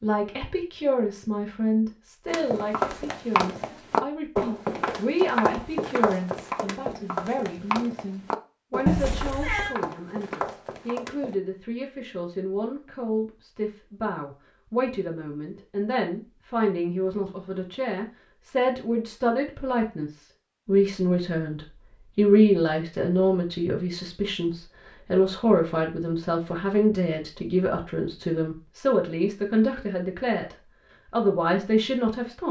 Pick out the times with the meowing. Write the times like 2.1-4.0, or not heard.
8.8-9.8.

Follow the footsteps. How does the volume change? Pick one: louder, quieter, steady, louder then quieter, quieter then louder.
quieter.